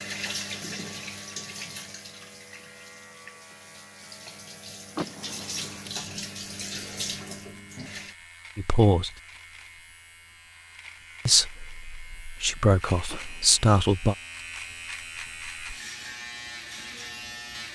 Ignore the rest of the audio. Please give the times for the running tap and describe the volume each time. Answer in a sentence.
The running tap can be heard from 0.0 to 8.2 s, getting quieter then louder.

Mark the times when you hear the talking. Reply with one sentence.
The talking can be heard from 8.6 to 9.1 s and from 11.2 to 14.2 s.